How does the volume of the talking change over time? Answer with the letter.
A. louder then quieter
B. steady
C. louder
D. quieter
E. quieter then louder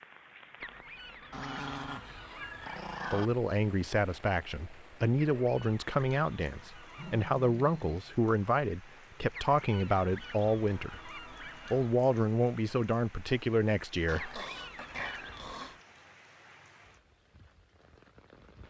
B.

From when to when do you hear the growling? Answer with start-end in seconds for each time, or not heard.
1.3-3.3, 6.8-8.0, 14.1-15.8.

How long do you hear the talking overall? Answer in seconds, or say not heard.
11 s.